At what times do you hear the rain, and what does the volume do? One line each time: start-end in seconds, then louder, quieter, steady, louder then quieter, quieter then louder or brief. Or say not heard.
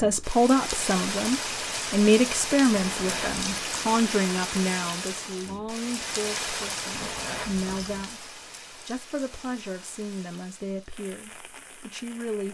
0.0-12.5 quieter.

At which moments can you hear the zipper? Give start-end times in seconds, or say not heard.
2.7-3.7, 6.9-8.2.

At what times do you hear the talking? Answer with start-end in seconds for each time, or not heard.
0.0-12.5.